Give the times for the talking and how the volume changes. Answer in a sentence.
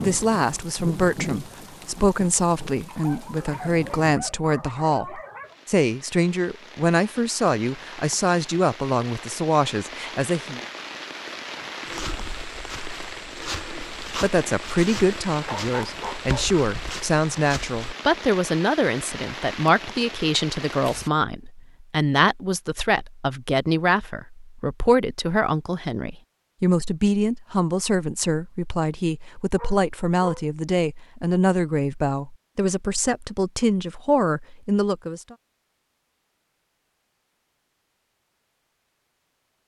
You can hear the talking from 0.0 to 10.6 s, at a steady volume; and from 14.2 to 35.4 s, at a steady volume.